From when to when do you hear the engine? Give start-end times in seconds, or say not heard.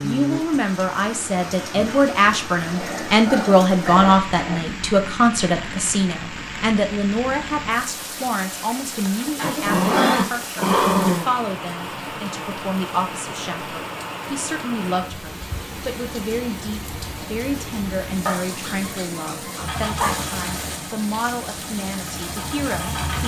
19.6-23.2.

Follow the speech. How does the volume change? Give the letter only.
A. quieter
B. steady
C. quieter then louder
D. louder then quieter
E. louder
A.